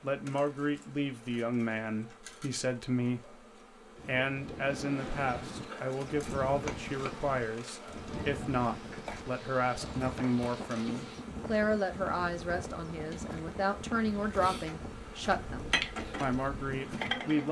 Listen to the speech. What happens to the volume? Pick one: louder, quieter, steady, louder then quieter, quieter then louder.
steady.